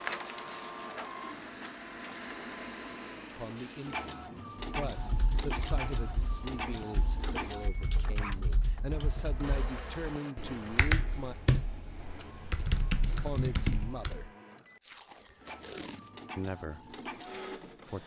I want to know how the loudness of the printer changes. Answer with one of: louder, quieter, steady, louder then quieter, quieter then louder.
quieter then louder.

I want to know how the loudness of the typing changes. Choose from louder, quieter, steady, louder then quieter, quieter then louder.
louder.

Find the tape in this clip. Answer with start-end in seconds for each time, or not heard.
5.3-5.8, 14.8-16.1.